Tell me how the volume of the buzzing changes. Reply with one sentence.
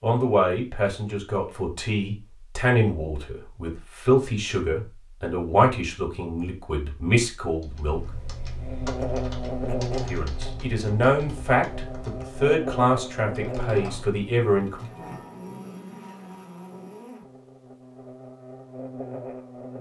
The volume of the buzzing goes down.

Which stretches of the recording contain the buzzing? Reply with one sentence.
You can hear the buzzing from 8.6 to 19.7 s.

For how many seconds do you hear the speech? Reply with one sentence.
The speech can be heard for 13 seconds in total.